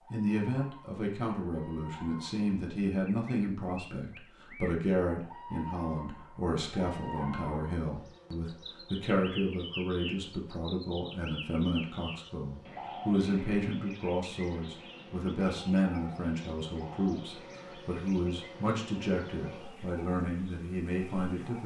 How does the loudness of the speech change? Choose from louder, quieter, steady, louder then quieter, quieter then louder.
steady.